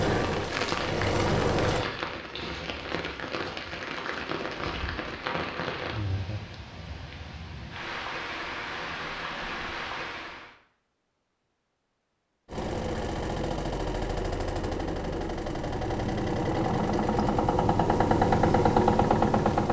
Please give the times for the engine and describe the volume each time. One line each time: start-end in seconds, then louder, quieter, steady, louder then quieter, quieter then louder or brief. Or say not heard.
0.0-1.9 brief
12.4-19.6 louder.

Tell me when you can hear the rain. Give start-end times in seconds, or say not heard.
0.0-10.6.